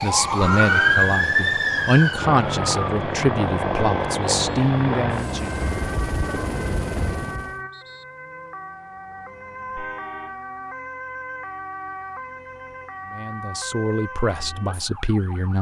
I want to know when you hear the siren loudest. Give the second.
1 s.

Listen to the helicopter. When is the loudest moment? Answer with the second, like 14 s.
4 s.